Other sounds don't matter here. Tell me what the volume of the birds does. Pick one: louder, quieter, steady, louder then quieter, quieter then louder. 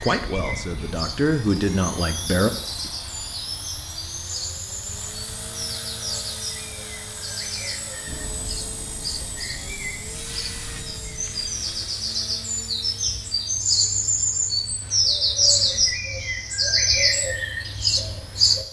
louder.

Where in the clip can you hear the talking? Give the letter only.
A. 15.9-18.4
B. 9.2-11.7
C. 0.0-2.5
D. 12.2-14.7
C.